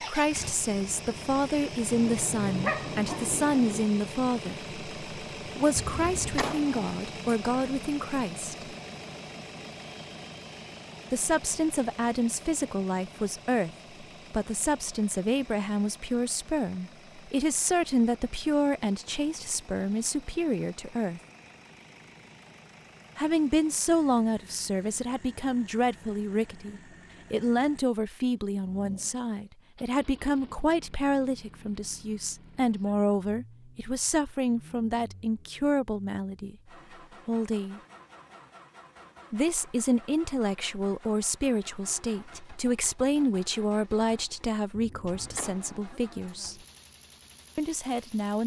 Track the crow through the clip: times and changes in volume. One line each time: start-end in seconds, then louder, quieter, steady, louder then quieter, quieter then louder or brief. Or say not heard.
not heard.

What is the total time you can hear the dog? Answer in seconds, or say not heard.
2 s.